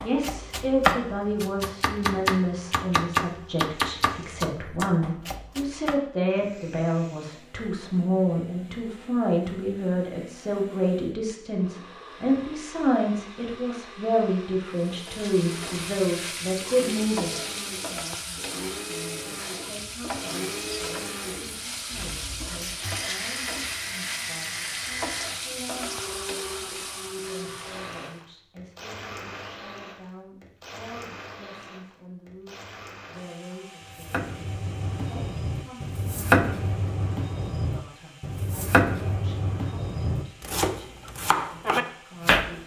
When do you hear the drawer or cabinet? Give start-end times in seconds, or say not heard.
not heard.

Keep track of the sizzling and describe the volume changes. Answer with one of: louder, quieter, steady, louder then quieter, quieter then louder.
steady.